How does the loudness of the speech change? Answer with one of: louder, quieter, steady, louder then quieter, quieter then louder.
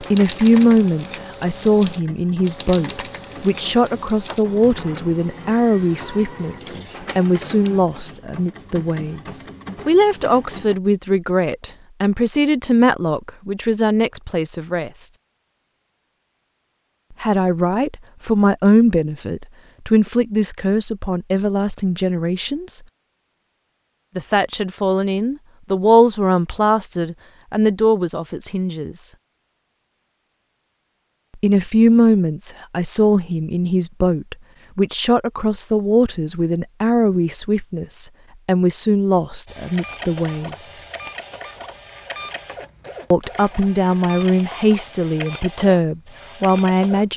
steady.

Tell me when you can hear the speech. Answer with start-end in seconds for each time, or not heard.
0.0-15.1, 17.2-22.8, 24.1-29.1, 31.4-40.8, 43.1-47.1.